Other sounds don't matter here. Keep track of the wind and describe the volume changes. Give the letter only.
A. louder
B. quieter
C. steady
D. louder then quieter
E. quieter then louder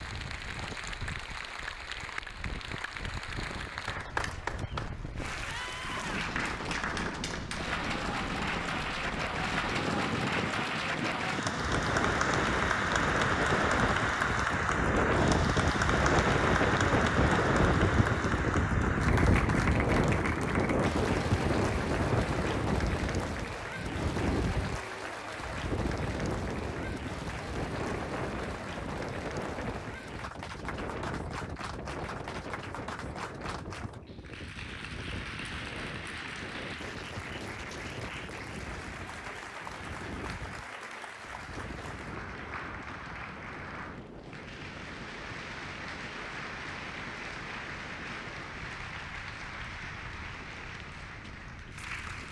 D.